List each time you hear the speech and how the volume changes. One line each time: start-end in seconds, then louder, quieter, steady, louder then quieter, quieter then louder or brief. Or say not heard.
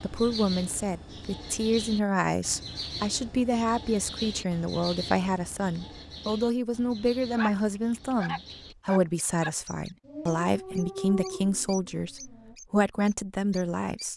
0.0-14.1 steady.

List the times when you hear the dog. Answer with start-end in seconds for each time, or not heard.
7.3-12.6.